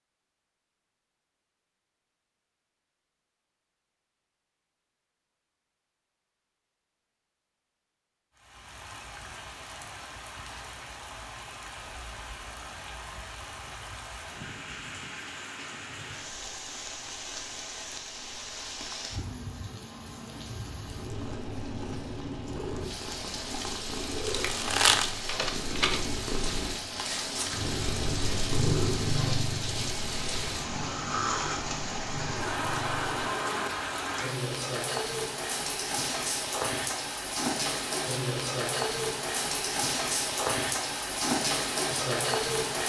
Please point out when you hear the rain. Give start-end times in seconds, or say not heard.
8.3-42.8.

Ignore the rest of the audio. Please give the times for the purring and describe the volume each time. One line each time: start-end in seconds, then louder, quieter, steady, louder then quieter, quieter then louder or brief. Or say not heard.
21.1-33.4 louder then quieter.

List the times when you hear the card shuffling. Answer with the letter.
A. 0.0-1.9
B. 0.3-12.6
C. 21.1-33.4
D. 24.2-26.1
D.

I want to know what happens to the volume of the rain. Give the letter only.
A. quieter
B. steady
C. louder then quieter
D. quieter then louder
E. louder
E.